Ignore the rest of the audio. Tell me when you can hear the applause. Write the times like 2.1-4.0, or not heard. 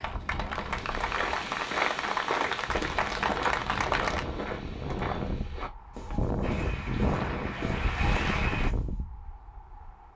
0.0-4.2, 6.4-8.8.